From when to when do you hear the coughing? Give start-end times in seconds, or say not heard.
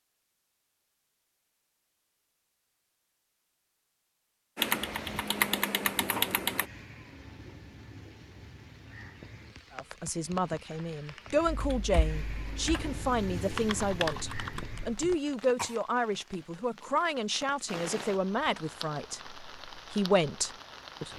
14.6-15.8.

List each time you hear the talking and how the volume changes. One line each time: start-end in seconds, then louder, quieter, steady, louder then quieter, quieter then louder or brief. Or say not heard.
9.7-21.1 steady.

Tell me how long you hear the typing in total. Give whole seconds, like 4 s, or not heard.
6 s.